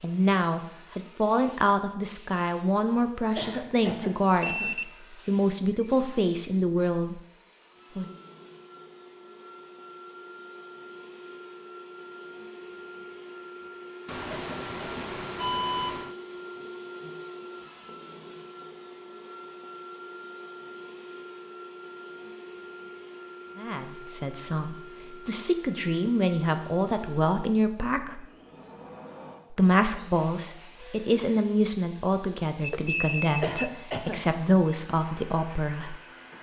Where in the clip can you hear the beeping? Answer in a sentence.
You can hear the beeping from 4.3 to 6.3 s, from 14.1 to 16.1 s and from 32.6 to 33.6 s.